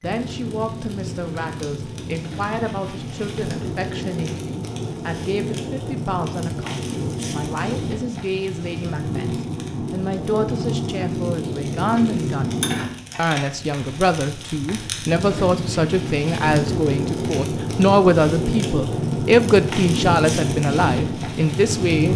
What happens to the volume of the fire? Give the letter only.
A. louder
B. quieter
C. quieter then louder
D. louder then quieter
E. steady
A.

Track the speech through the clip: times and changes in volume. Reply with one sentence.
The speech can be heard from 0.0 to 22.1 s, getting louder.